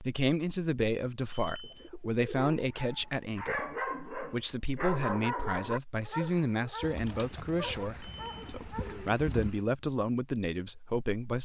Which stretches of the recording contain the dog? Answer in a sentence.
The dog can be heard from 2.4 to 9.2 s.